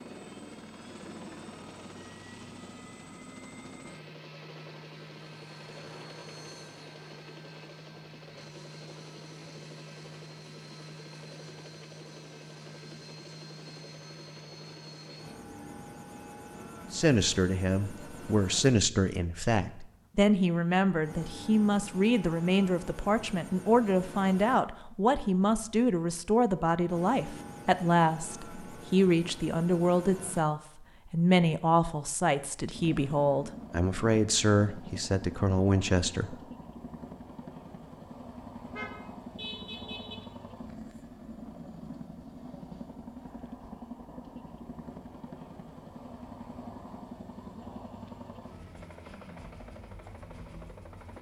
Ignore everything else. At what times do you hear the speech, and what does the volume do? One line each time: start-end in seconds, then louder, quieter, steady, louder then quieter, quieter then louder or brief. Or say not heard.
16.9-36.4 steady.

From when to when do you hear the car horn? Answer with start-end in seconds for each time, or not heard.
38.6-40.1.